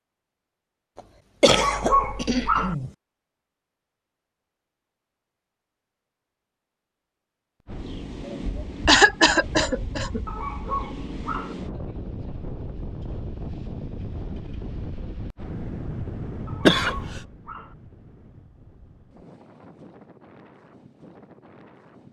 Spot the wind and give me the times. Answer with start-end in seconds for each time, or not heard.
7.7-22.0.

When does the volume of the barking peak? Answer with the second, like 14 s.
2 s.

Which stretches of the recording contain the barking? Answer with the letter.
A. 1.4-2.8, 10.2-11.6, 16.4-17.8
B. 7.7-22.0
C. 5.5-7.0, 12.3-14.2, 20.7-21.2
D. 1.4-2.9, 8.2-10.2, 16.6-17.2
A.